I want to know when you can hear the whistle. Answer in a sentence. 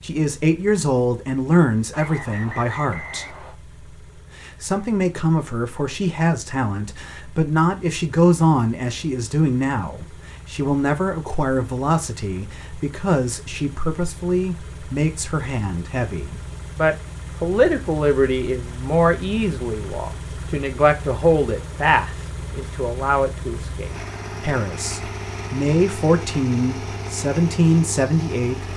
You can hear the whistle from 1.9 to 3.5 s.